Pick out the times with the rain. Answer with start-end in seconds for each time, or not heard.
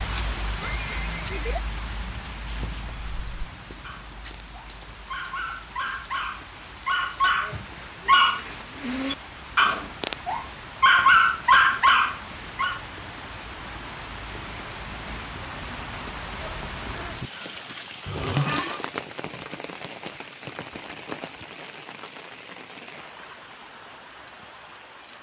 0.0-25.1.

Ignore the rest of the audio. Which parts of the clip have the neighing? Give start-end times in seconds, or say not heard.
0.6-1.6, 18.1-18.8.